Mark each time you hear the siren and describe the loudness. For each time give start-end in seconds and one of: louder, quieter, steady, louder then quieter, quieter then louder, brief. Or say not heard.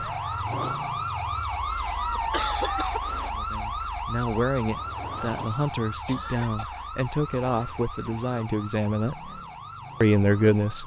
0.0-10.8 quieter.